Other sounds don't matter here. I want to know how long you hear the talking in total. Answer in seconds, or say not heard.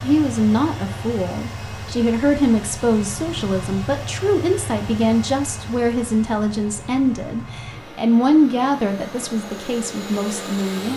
11 s.